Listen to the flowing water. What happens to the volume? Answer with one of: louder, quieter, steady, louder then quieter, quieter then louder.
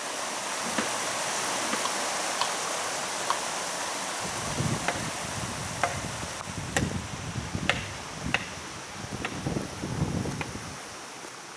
quieter.